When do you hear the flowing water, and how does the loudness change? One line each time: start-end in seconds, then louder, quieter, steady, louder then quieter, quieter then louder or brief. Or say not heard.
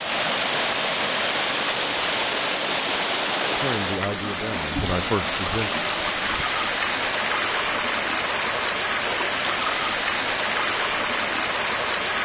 0.0-12.1 steady.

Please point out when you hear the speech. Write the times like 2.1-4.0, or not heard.
3.5-5.7.